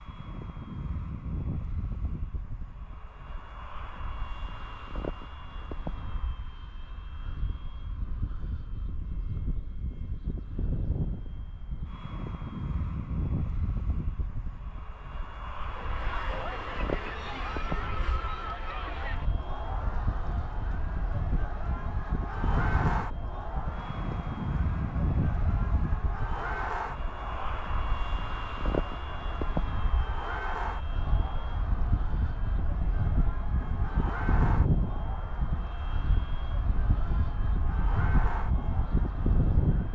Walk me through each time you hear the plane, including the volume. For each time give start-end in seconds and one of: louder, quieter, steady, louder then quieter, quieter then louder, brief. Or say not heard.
0.0-39.9 louder.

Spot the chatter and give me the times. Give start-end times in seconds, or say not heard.
15.7-39.9.